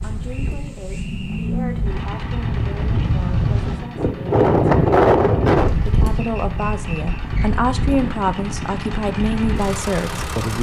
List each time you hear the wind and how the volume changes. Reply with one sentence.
You can hear the wind from 0.0 to 10.3 s, getting louder then quieter.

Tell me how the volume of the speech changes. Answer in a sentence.
The volume of the speech goes up.